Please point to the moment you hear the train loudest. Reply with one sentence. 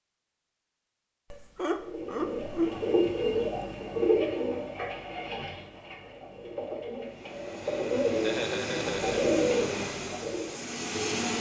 The loudest moment of the train is at 11 seconds.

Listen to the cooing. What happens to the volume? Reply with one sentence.
The loudness of the cooing goes down, then up.